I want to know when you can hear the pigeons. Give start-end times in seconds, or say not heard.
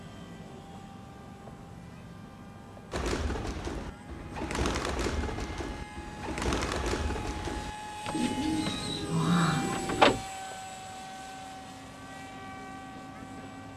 2.9-10.2.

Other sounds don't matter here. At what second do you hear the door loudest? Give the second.
10 s.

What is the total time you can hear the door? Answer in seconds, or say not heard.
2 s.